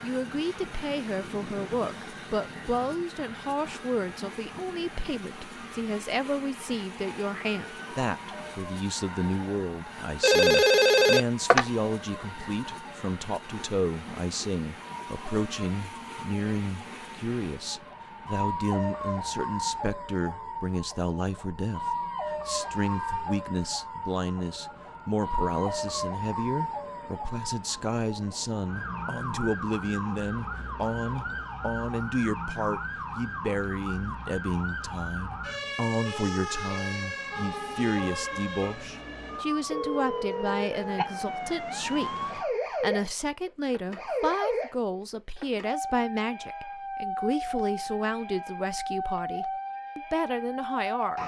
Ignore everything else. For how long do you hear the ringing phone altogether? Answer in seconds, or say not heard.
3 s.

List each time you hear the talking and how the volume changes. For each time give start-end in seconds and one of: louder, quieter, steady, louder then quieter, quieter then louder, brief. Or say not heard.
0.0-51.2 steady.